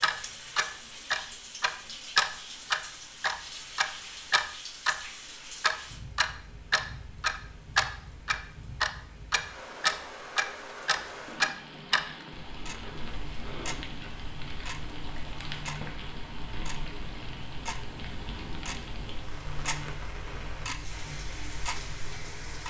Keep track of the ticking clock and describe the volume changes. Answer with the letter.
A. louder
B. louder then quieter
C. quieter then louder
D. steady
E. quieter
E.